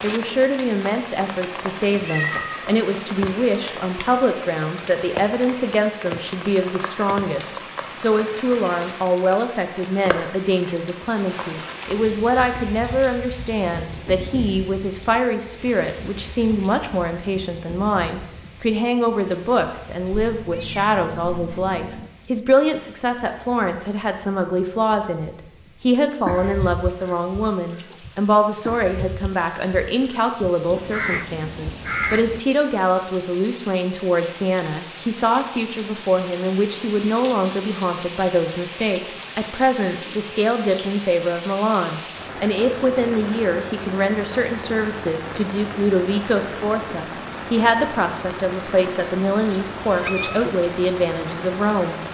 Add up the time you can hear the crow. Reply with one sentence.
The crow can be heard for 6 seconds in total.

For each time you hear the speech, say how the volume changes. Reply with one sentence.
The speech can be heard from 0.0 to 52.0 s, at a steady volume.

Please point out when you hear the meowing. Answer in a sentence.
The meowing can be heard from 2.0 to 2.7 s, from 20.1 to 22.1 s and from 49.4 to 50.5 s.